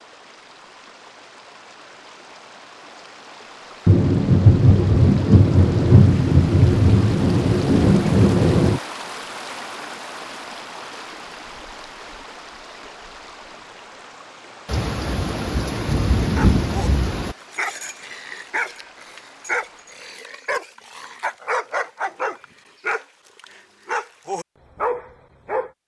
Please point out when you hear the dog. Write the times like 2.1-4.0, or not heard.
16.4-25.7.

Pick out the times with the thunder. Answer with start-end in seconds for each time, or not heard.
3.9-8.8, 14.7-17.4.